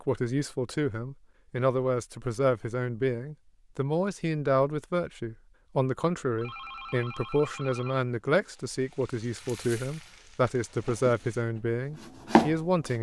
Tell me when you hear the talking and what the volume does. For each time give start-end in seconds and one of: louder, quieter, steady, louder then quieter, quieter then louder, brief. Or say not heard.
0.0-12.9 steady.